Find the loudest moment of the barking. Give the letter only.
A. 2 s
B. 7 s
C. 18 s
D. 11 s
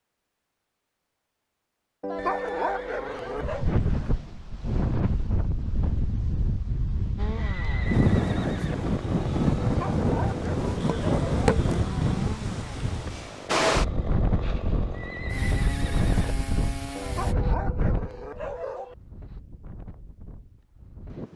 A.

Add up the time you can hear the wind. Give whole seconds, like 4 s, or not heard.
18 s.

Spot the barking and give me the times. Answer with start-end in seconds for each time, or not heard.
2.0-3.6, 9.6-11.6, 16.9-18.9.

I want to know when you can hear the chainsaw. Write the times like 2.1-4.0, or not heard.
7.2-17.4.